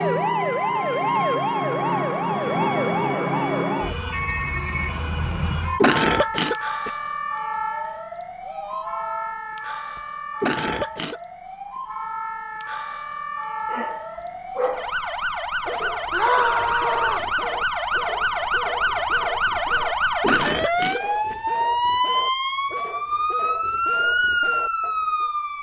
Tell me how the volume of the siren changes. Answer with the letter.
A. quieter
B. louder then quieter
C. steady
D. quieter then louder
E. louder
D.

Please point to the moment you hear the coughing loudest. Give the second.
6 s.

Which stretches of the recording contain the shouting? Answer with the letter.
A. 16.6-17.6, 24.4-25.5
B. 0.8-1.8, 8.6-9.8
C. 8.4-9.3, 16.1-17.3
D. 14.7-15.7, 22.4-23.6
C.